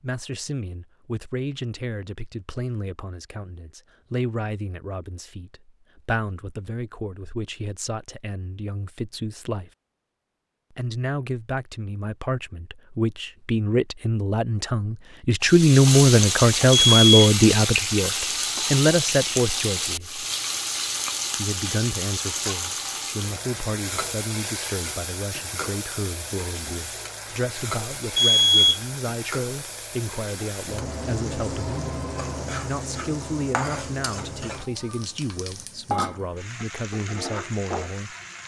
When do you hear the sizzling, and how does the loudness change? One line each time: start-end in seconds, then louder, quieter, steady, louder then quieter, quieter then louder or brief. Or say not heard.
15.4-38.4 quieter.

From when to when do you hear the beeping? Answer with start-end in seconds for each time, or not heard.
16.7-17.1, 28.1-28.8.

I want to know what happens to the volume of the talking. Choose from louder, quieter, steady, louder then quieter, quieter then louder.
louder then quieter.